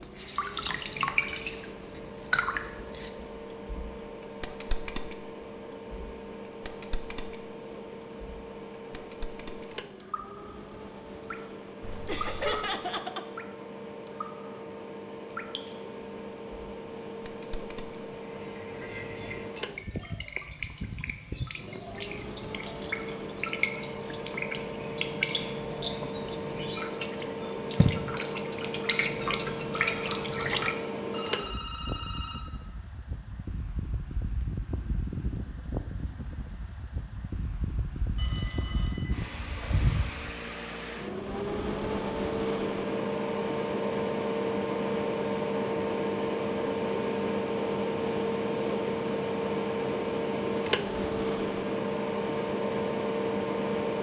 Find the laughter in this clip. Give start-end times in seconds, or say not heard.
12.1-13.2.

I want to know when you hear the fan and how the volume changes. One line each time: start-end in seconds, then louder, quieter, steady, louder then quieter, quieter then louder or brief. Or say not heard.
0.0-53.9 louder.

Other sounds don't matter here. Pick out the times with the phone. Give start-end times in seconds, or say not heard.
11.8-12.7, 31.1-32.5, 38.1-39.9.